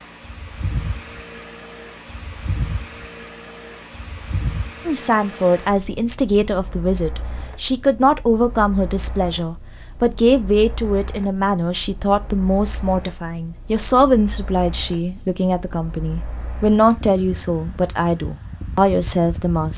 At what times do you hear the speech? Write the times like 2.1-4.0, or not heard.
4.8-19.7.